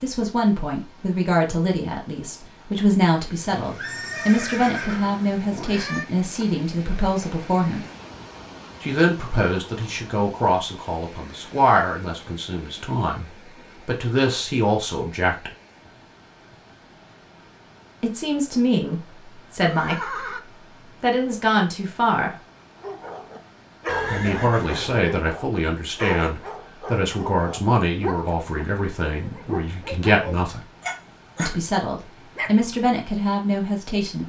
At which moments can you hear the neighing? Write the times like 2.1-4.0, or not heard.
3.5-6.0, 19.6-20.4, 23.9-25.1.